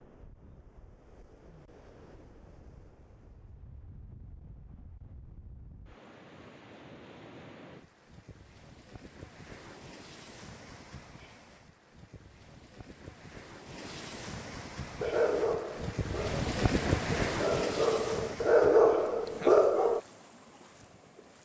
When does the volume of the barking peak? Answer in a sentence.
The loudest moment of the barking is at 19 seconds.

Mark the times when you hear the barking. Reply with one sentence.
The barking can be heard from 15.0 to 20.0 s.